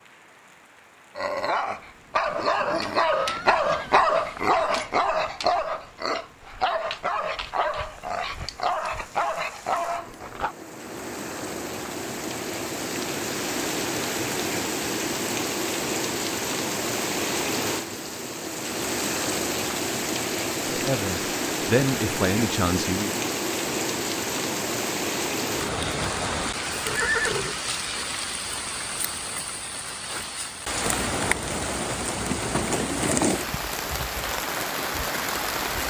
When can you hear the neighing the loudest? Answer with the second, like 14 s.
27 s.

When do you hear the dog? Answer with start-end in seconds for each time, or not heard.
1.1-10.6.